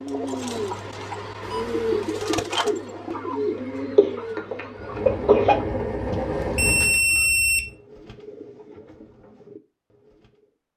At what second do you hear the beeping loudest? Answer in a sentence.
The volume of the beeping peaks at 7 seconds.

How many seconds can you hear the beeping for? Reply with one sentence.
The beeping can be heard for 2 seconds in total.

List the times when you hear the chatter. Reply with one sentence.
You can't hear the chatter here.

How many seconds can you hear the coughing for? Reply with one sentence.
The coughing can be heard for 2 seconds in total.